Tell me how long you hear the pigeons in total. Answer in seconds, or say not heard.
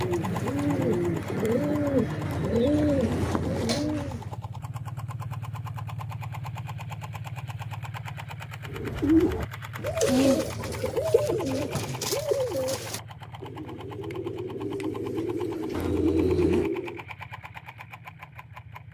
13 s.